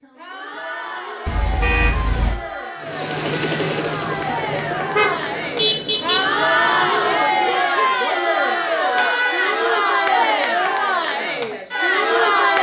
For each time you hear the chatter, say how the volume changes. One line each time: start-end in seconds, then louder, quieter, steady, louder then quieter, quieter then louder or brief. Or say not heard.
0.0-12.5 louder.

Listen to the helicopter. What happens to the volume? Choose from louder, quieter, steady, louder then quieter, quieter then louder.
quieter.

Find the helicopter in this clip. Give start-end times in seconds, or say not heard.
2.8-7.8.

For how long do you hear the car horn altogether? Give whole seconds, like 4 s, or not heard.
3 s.